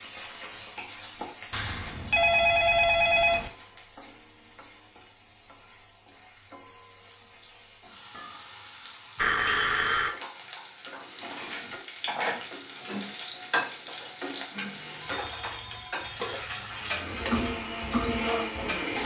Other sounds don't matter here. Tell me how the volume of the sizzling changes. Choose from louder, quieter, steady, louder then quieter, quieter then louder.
quieter then louder.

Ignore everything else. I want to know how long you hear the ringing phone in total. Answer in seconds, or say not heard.
4 s.